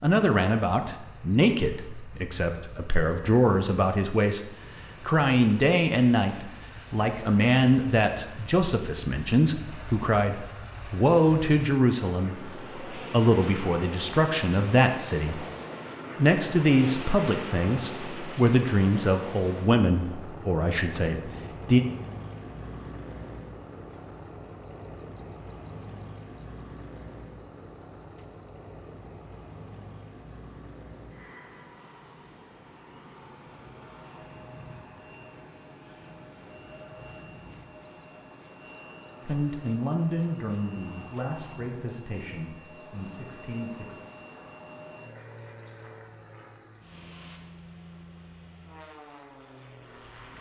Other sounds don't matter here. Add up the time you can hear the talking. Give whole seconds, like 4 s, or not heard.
26 s.